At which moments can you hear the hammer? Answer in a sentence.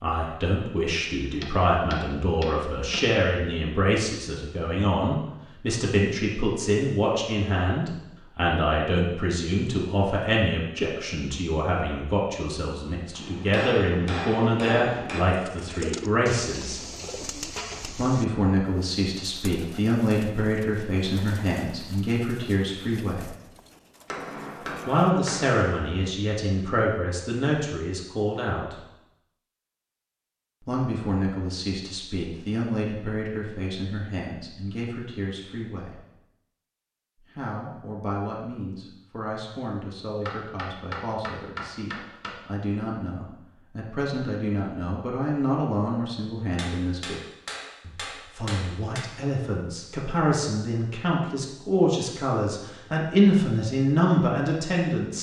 You can hear the hammer from 1.4 to 3.0 s, from 13.2 to 15.2 s, from 24.1 to 25.6 s, from 40.2 to 42.4 s and from 46.5 to 49.0 s.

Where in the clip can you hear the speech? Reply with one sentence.
The speech can be heard from 0.0 to 16.8 s, from 17.9 to 23.3 s, from 24.9 to 28.8 s, from 30.6 to 36.0 s, from 37.3 to 47.2 s and from 47.8 to 55.1 s.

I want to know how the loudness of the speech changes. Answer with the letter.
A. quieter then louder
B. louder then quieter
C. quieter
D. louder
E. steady
A.